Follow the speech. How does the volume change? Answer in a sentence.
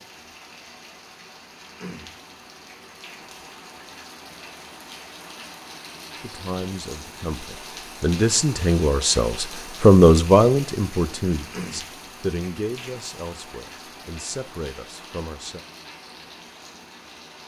The loudness of the speech goes up, then down.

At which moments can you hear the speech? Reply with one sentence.
You can hear the speech from 6.2 to 15.6 s.